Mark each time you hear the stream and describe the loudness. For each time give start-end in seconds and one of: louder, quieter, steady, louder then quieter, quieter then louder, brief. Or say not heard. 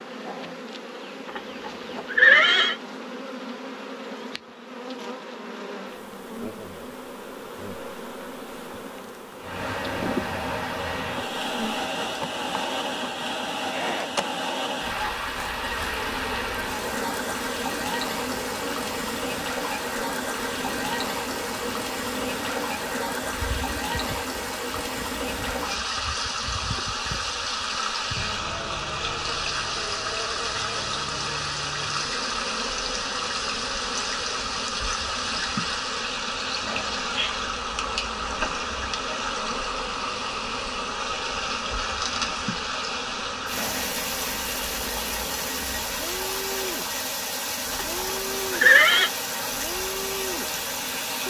9.3-51.2 steady.